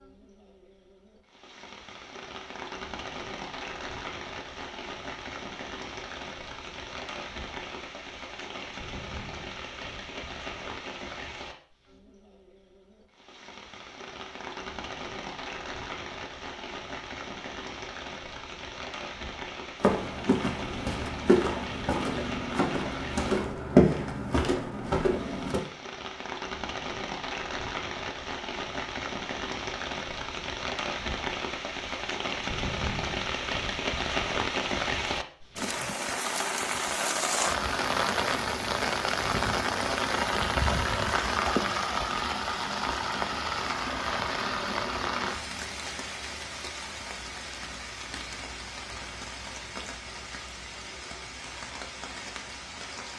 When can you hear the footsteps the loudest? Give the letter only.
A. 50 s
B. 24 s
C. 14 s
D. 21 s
B.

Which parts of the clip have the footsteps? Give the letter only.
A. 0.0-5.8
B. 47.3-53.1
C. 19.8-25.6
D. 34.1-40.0
C.